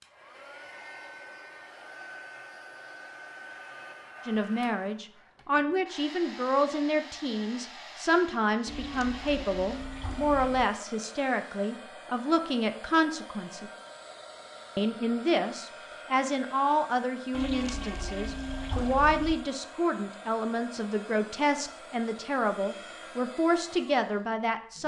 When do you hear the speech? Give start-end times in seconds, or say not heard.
4.2-13.7, 14.8-24.8.